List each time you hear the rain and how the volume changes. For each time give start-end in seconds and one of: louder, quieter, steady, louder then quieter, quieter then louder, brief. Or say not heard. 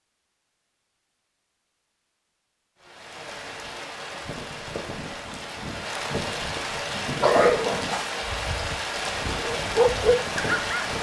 2.8-10.9 louder.